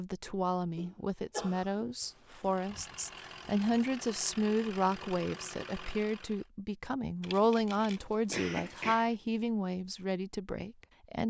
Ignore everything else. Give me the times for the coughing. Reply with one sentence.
The coughing can be heard from 0.2 to 1.9 s and from 8.3 to 9.1 s.